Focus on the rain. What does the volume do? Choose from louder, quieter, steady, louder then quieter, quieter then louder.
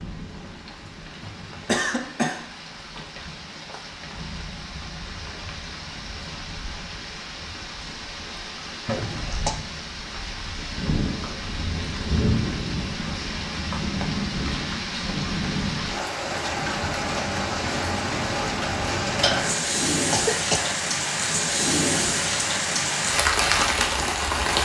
louder.